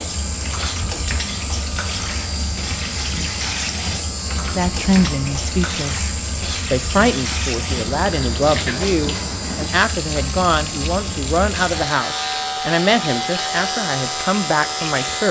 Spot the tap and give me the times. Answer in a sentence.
You can hear the tap from 0.0 to 15.2 s.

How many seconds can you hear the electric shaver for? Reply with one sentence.
The electric shaver can be heard for 15 seconds in total.